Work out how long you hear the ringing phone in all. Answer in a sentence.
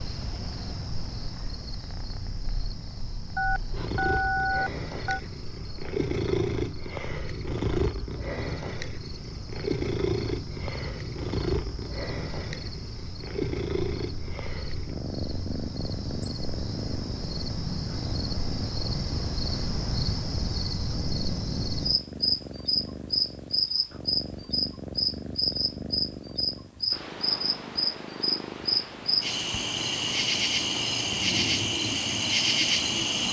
The ringing phone can be heard for 2 seconds in total.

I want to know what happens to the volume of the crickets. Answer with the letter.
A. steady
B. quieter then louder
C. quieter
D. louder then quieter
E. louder
E.